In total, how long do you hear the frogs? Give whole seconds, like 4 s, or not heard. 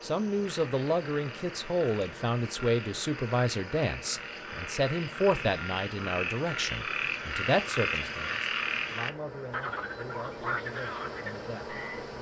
12 s.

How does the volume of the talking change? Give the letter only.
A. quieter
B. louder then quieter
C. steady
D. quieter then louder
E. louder
A.